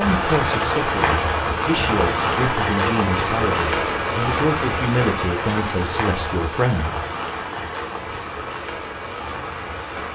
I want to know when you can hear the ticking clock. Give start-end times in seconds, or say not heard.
not heard.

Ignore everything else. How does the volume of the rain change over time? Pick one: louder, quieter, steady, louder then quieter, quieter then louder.
quieter.